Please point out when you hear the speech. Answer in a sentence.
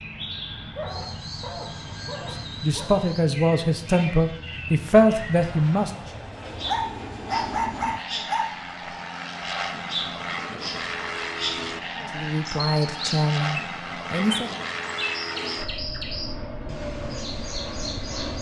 You can hear the speech from 2.2 to 5.9 s and from 12.2 to 14.6 s.